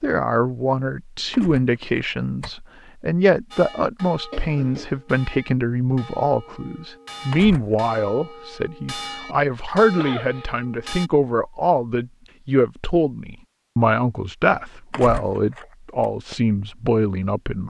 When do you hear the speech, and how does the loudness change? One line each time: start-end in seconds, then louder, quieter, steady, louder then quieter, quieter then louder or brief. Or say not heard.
0.0-17.6 steady.